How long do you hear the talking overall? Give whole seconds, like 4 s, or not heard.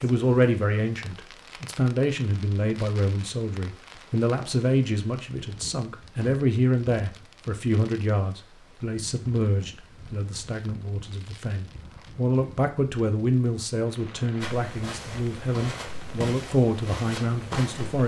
18 s.